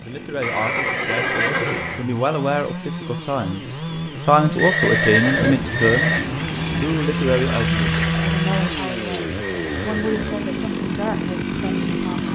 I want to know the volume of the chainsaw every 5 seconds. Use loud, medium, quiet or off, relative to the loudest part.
medium, loud, loud.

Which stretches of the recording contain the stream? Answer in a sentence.
You can hear the stream from 4.5 to 12.2 s.